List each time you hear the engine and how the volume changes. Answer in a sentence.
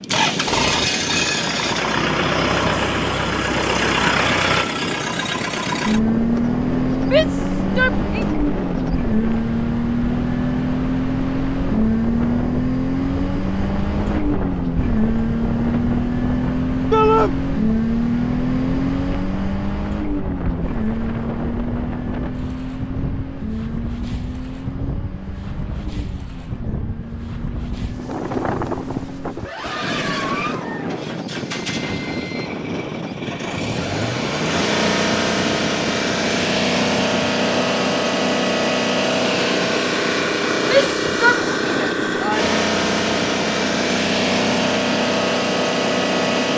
The engine can be heard from 0.0 to 46.5 s, getting quieter then louder.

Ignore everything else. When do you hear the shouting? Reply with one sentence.
You can hear the shouting from 7.1 to 8.2 s, from 16.9 to 17.3 s and from 40.6 to 42.5 s.